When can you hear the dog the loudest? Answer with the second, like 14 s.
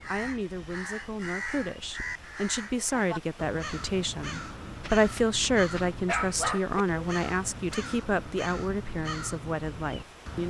6 s.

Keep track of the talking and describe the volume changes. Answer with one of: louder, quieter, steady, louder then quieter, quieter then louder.
louder then quieter.